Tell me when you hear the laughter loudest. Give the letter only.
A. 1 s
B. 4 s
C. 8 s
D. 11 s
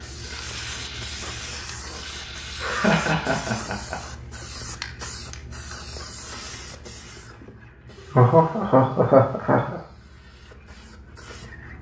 C.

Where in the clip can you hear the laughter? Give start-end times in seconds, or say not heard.
2.6-4.0, 8.0-9.8.